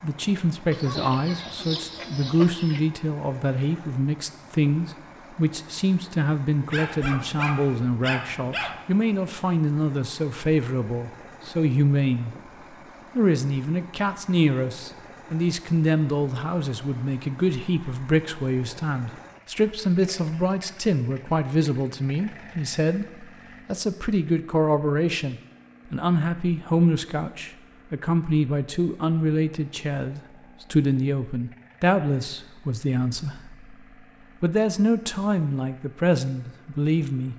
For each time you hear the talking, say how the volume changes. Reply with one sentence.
The talking can be heard from 0.0 to 12.3 s, at a steady volume; from 13.2 to 33.8 s, at a steady volume; and briefly from 34.4 to 37.3 s.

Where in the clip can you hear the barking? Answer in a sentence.
The barking can be heard from 6.7 to 8.8 s.